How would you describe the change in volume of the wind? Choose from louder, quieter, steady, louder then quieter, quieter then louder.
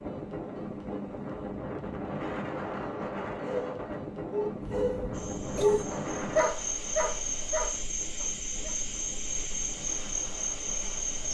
quieter.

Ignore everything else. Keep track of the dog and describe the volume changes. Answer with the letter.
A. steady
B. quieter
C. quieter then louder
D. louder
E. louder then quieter
E.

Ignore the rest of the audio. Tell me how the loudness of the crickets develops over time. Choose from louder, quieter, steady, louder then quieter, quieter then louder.
louder.